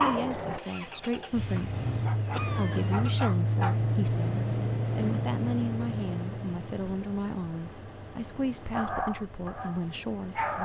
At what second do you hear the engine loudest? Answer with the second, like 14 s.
4 s.